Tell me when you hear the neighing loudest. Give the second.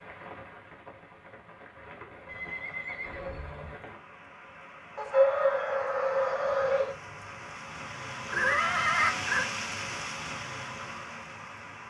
9 s.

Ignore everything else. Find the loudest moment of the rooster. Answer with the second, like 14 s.
5 s.